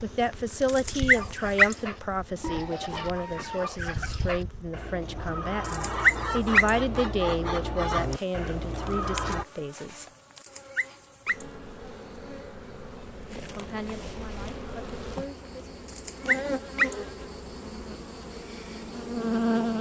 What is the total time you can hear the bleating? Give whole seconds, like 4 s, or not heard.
not heard.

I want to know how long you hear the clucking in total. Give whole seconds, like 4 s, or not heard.
8 s.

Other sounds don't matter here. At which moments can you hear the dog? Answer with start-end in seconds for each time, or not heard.
0.7-1.8, 5.7-6.7, 10.3-11.4, 15.8-16.9.